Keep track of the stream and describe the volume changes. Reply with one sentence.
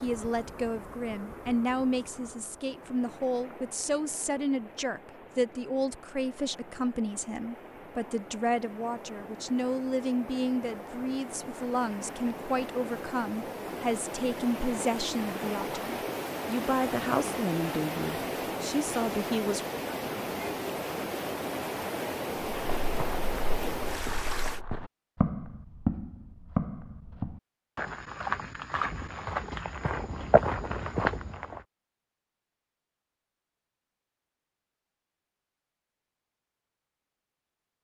The volume of the stream goes up.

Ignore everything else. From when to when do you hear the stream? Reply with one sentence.
The stream can be heard from 0.0 to 24.6 s.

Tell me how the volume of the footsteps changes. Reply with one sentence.
The loudness of the footsteps goes up.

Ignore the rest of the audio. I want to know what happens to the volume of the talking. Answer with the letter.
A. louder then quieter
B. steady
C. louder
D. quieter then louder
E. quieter
B.